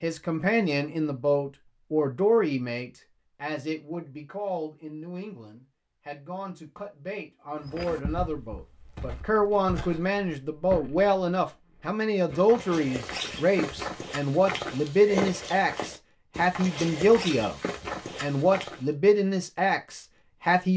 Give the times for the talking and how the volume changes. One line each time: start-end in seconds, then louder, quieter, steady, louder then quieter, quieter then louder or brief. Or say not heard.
0.0-17.6 quieter then louder
18.2-20.7 brief.